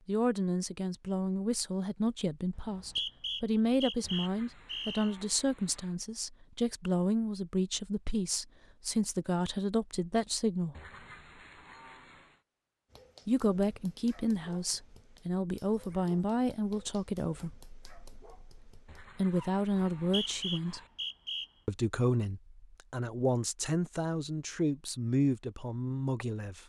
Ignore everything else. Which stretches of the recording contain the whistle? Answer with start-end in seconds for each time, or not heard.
2.5-5.2, 19.9-21.5.